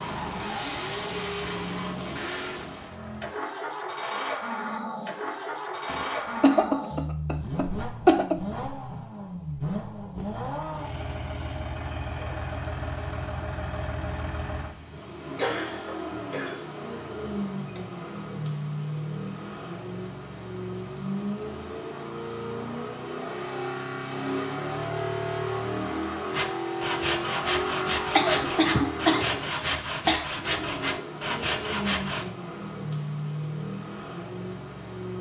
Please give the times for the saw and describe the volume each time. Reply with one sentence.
You can hear the saw from 26.3 to 32.3 s, at a steady volume.